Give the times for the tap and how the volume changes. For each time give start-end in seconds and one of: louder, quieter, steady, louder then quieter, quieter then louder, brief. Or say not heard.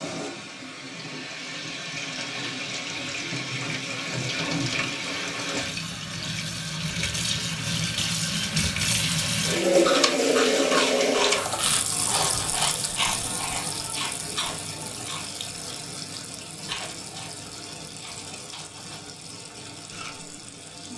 0.0-20.9 louder then quieter.